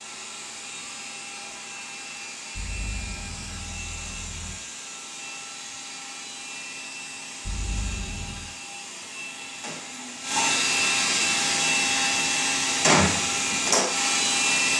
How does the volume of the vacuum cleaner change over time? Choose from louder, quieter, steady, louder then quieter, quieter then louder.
louder.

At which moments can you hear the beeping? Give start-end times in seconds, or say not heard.
2.5-4.5, 7.4-8.5.